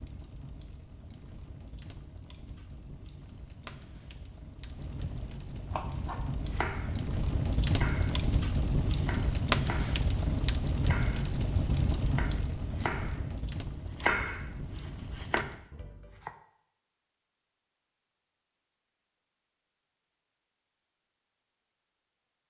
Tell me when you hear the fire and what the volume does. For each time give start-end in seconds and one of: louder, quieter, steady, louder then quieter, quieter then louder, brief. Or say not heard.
0.0-15.7 louder then quieter.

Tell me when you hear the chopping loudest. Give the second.
14 s.